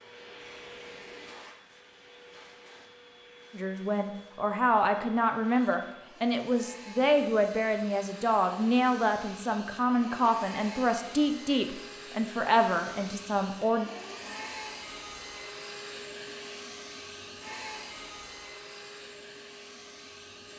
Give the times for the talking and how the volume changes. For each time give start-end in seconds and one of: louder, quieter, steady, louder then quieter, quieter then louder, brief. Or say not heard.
3.5-13.9 steady.